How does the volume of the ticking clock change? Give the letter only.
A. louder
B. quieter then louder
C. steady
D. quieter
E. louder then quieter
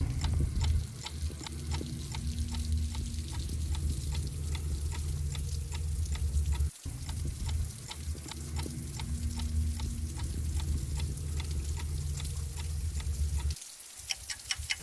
C.